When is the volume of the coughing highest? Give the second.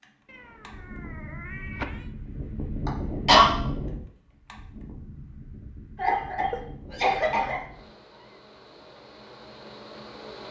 3 s.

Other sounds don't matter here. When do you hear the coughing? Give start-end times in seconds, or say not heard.
2.9-3.5, 6.0-7.5.